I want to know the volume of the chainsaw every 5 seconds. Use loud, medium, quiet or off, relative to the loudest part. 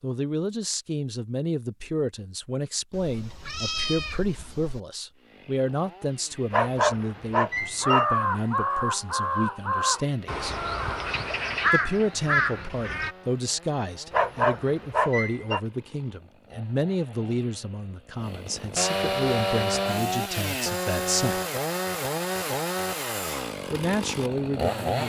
off, quiet, quiet, loud, loud.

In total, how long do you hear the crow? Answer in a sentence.
The crow can be heard for 5 seconds in total.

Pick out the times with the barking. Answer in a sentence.
The barking can be heard from 6.5 to 8.1 s and from 14.1 to 15.6 s.